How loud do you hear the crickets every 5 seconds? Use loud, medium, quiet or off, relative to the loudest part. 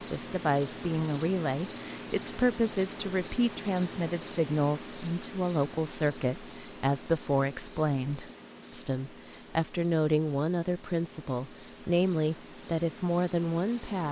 loud, medium, medium.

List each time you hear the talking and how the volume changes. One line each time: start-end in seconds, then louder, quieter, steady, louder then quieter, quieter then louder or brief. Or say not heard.
0.1-14.0 steady.